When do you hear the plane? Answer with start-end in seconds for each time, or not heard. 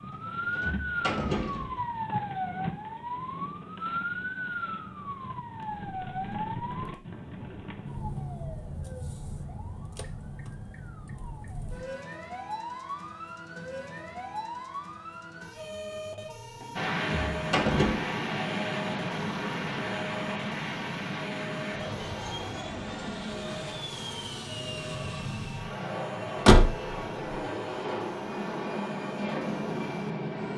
16.8-30.5.